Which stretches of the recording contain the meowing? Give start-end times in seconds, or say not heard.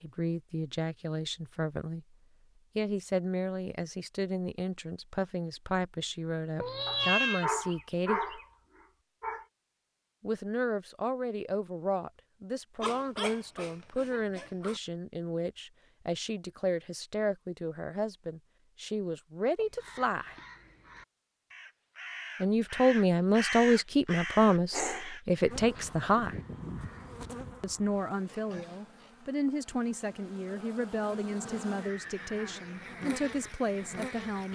6.6-7.5.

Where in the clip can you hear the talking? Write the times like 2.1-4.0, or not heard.
0.0-2.0, 2.8-8.4, 10.2-20.4, 22.4-26.4, 27.6-34.4.